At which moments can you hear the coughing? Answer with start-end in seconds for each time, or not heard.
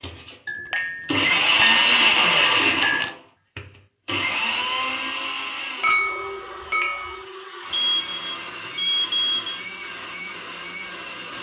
not heard.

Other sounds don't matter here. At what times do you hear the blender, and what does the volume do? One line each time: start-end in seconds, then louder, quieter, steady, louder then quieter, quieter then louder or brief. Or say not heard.
0.0-11.3 quieter.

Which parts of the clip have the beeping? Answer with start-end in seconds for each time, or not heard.
7.7-9.6.